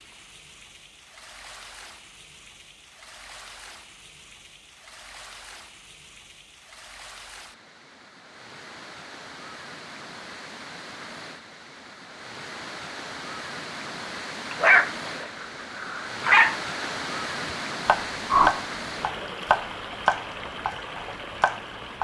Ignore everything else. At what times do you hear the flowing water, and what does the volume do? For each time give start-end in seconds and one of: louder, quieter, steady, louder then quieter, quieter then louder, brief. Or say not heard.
0.0-22.0 louder.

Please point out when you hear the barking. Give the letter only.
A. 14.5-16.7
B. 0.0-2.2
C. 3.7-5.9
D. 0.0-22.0
A.